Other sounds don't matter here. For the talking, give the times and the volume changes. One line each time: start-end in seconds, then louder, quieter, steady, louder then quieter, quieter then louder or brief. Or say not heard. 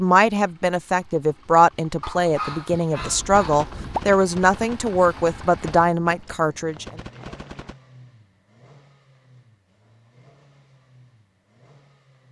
0.0-6.8 steady.